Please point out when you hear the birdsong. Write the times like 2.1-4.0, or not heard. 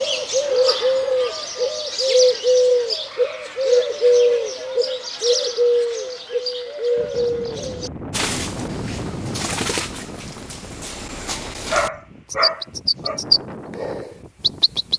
0.0-14.9.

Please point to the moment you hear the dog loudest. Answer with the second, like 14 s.
12 s.